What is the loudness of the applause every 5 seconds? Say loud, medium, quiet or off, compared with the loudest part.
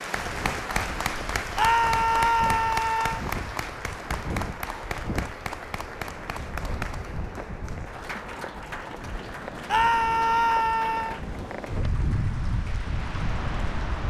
loud, medium, quiet.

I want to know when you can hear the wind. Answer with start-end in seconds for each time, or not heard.
0.1-14.0.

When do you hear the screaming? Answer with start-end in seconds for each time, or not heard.
1.6-3.2, 9.7-11.2.